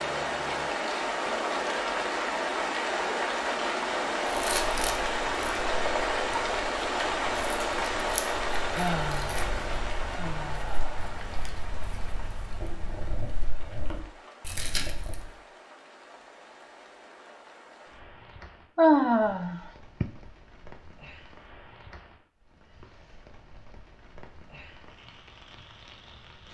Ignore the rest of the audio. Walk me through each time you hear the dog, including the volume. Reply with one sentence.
The dog can't be heard in this clip.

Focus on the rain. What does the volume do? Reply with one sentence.
The volume of the rain goes down.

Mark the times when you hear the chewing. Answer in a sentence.
You can hear the chewing from 4.2 to 15.3 s.